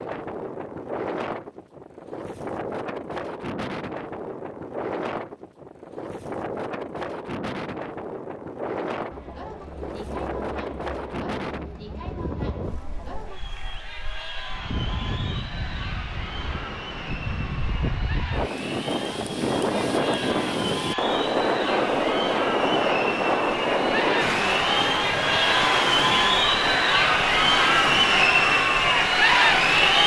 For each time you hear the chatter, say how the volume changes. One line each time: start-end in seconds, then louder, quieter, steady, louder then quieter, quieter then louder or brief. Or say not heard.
9.1-30.0 louder.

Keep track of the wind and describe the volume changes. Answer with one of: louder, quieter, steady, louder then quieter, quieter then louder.
louder.